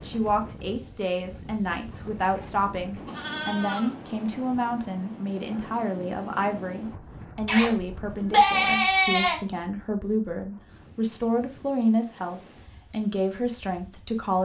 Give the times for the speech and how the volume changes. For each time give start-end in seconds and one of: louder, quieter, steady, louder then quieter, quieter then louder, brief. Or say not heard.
0.1-14.4 steady.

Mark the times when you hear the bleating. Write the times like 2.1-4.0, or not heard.
1.9-4.2, 7.5-9.4.